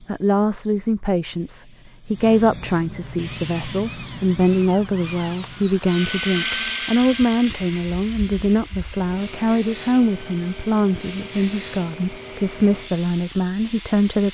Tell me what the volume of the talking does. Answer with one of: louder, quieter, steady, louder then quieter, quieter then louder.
steady.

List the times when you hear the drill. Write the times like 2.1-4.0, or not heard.
3.1-14.3.